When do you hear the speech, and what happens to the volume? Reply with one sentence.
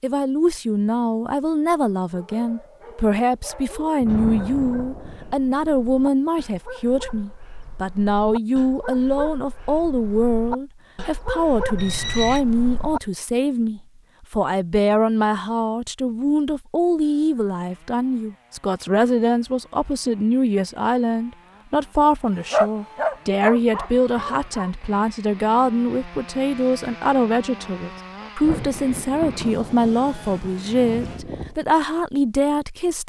You can hear the speech from 0.0 to 33.0 s, at a steady volume.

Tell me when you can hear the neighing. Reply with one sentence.
You can hear the neighing from 11.8 to 12.4 s and from 30.8 to 31.6 s.